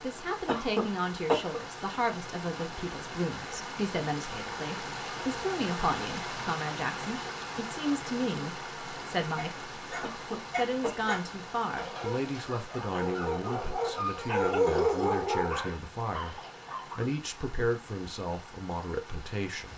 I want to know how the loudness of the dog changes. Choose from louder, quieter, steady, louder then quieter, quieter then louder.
louder then quieter.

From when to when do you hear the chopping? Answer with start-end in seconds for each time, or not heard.
not heard.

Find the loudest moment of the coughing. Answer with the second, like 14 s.
1 s.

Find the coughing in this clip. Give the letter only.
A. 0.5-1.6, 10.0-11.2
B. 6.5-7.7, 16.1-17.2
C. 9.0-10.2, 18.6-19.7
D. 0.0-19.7
A.